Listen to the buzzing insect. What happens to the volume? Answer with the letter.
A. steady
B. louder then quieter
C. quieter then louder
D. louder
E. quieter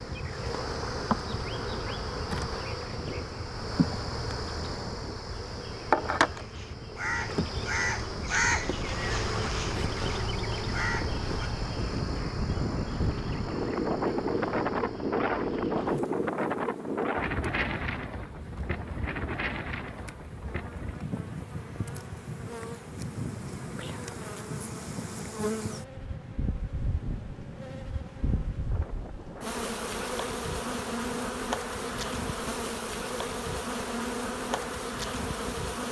C.